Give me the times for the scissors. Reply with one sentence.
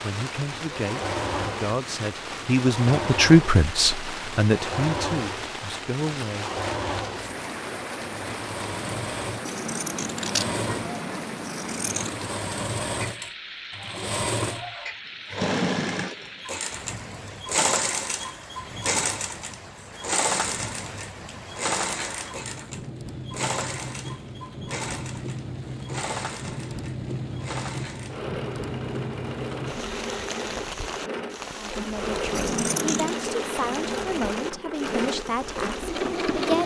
The scissors can be heard from 9.4 to 12.2 s and from 32.3 to 33.1 s.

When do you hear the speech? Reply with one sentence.
You can hear the speech from 0.0 to 6.5 s and from 31.6 to 36.6 s.